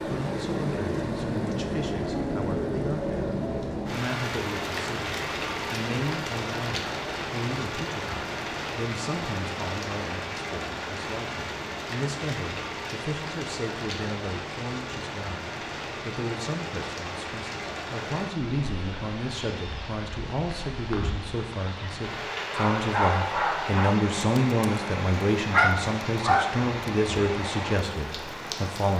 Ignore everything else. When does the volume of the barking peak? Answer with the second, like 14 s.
26 s.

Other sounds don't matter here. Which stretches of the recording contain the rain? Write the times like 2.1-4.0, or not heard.
0.0-28.9.